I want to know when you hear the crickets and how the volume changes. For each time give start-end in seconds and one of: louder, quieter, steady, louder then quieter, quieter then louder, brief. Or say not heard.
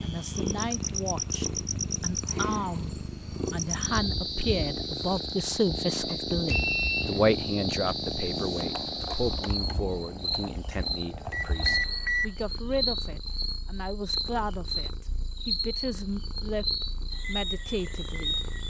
0.0-18.6 steady.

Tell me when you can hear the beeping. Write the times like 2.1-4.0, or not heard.
6.5-7.2, 11.3-12.3.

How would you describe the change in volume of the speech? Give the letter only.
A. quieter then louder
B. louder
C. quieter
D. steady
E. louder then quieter
E.